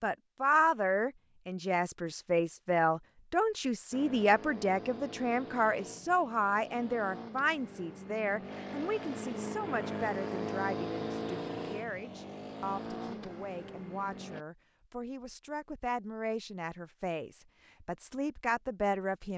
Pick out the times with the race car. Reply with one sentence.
You can hear the race car from 3.9 to 14.4 s.